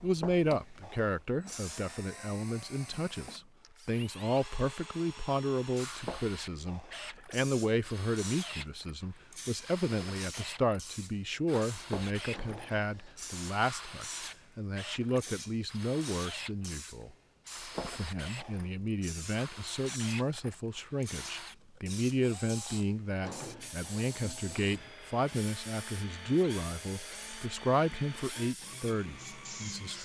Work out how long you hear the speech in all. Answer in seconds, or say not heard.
29 s.